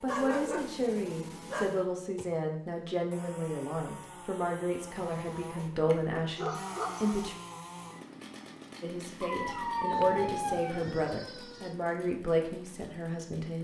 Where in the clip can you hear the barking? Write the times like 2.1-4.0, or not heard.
0.1-1.9, 6.3-7.3, 9.2-11.8.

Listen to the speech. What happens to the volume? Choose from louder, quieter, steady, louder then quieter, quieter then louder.
steady.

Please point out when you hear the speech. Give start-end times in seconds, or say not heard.
0.0-7.3, 8.8-13.5.